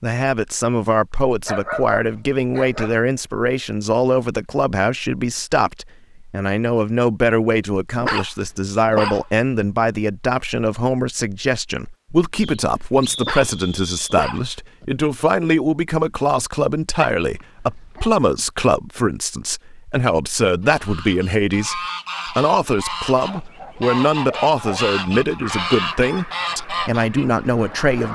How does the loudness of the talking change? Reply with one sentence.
The loudness of the talking stays about the same.